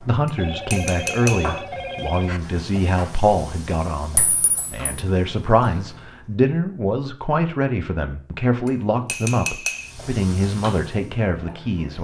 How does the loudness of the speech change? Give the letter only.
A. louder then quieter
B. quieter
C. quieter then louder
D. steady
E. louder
D.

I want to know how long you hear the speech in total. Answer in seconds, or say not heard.
12 s.